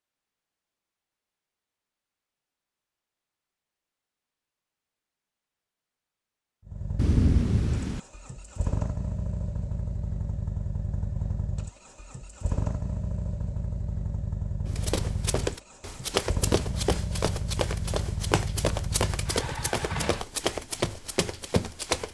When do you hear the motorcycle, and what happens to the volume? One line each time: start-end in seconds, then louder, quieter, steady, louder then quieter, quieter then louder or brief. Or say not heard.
6.7-20.2 steady.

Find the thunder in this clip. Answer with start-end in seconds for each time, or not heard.
7.0-8.0.